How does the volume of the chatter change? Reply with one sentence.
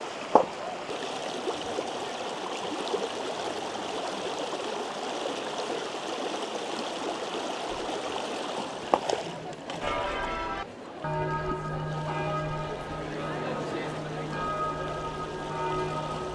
The loudness of the chatter goes up.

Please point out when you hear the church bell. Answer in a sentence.
You can hear the church bell from 9.8 to 16.2 s.